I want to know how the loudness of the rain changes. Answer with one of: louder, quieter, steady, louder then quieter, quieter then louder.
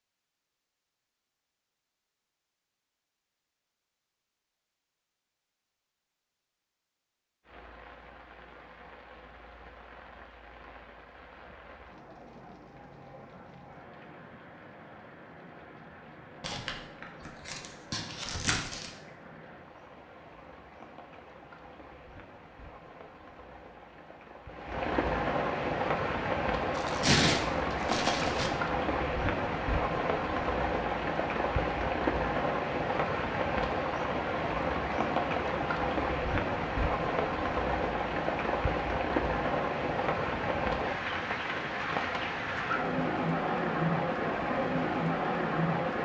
louder.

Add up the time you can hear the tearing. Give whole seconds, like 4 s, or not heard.
4 s.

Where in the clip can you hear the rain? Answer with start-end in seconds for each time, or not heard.
7.4-45.9.